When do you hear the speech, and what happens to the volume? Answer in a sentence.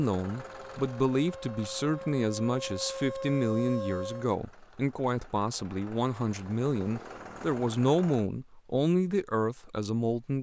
You can hear the speech from 0.0 to 10.3 s, at a steady volume.